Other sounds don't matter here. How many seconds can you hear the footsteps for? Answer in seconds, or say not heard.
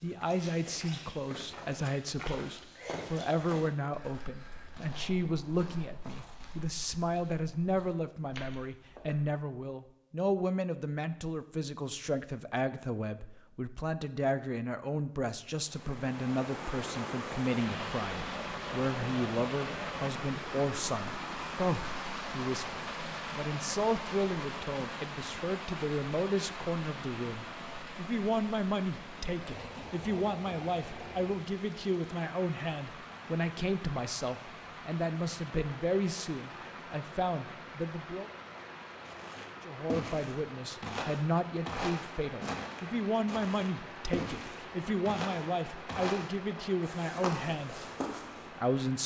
19 s.